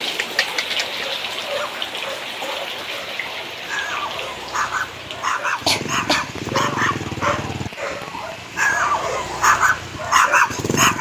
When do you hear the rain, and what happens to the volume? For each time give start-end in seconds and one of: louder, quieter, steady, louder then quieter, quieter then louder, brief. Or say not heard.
0.0-10.7 quieter.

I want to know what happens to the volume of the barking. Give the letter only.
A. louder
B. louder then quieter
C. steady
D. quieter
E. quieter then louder
A.